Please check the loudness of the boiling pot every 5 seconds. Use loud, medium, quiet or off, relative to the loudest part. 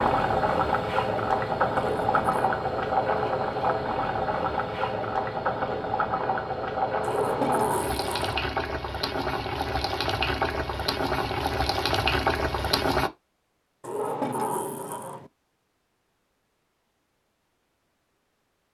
loud, loud, loud, off.